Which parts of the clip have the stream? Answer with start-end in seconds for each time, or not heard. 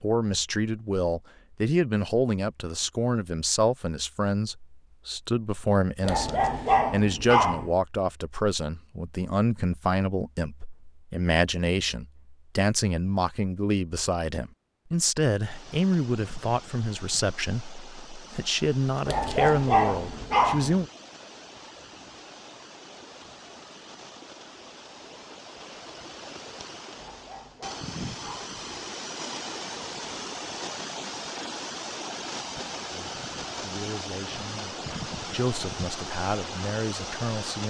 15.4-37.6.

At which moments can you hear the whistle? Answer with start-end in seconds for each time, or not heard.
not heard.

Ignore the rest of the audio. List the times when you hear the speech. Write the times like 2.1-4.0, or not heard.
0.0-20.9, 32.9-37.6.